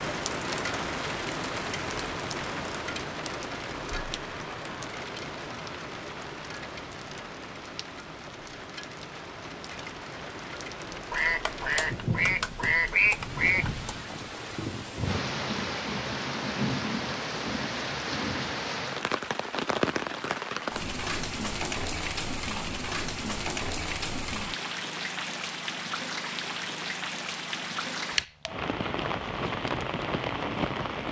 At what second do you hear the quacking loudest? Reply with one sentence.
The volume of the quacking peaks at 13 seconds.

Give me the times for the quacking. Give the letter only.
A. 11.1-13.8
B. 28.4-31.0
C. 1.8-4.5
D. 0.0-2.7
A.